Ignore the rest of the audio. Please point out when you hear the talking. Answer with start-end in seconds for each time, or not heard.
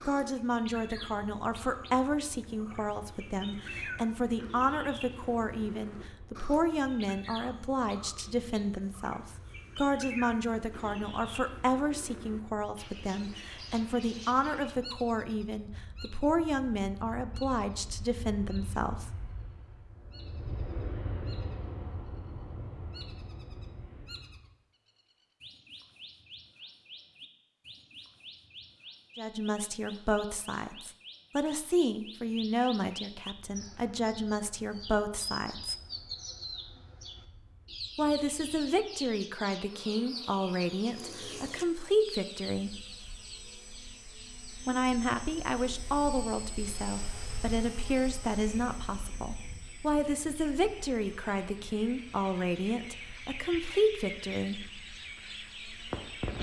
0.1-19.1, 29.1-35.8, 38.0-42.8, 44.6-54.6.